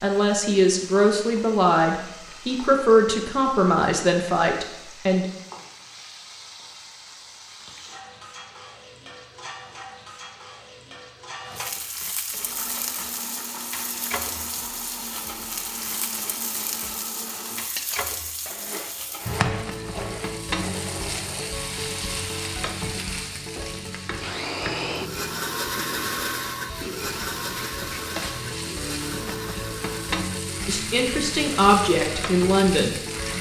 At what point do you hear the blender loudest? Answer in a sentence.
The loudest moment of the blender is at 26 seconds.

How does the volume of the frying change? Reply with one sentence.
The loudness of the frying goes up.